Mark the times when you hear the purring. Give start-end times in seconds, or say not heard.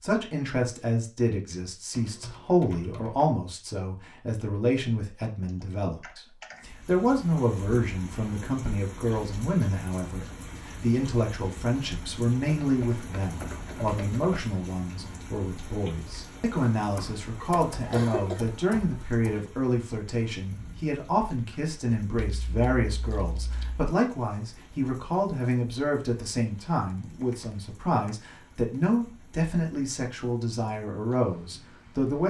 not heard.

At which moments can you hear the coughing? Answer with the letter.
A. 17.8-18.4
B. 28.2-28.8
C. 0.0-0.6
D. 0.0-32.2
A.